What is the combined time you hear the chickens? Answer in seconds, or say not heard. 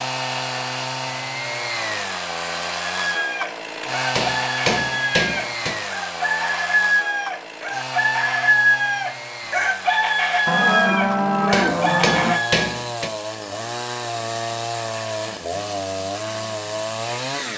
10 s.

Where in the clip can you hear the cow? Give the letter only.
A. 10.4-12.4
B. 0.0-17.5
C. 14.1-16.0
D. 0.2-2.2
A.